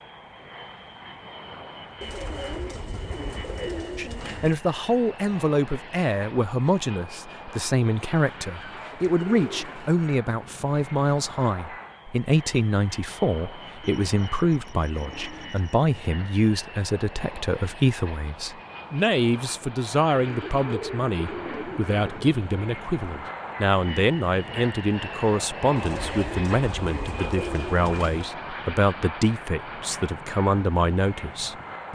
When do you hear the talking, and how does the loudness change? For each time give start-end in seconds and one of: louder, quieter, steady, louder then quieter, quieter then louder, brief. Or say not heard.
4.0-31.8 steady.